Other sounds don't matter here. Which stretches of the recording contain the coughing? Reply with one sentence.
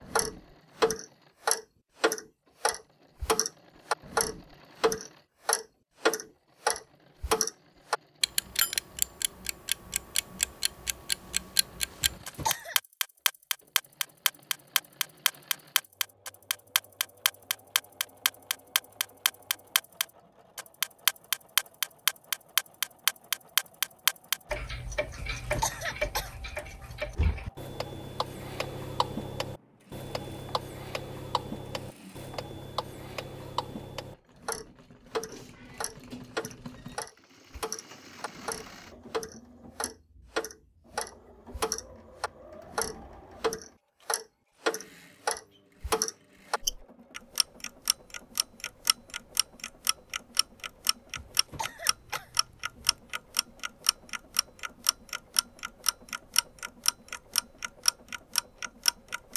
The coughing can be heard from 12.0 to 12.8 s, from 25.1 to 27.1 s and from 51.1 to 53.0 s.